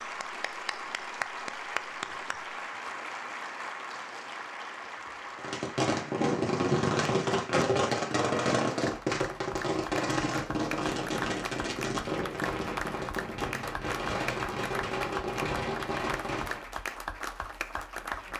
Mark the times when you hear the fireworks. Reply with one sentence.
You can hear the fireworks from 5.3 to 16.6 s.